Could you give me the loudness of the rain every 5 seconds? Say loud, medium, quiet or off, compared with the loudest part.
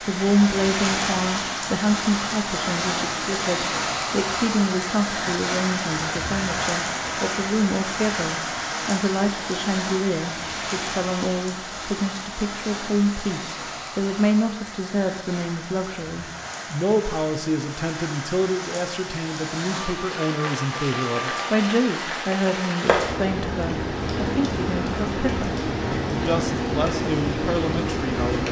loud, loud, medium, medium, loud, loud.